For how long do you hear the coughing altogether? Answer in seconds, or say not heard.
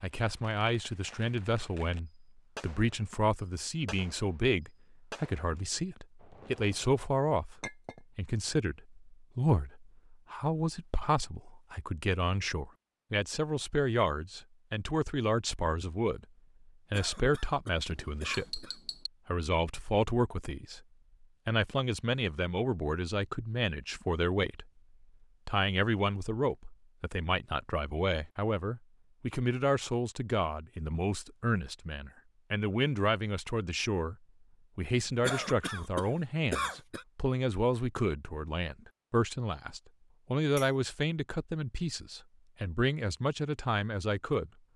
4 s.